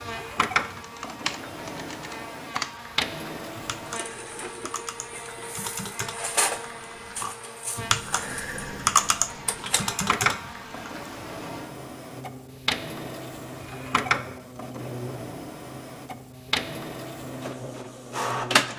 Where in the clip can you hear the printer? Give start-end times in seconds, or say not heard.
0.0-18.7.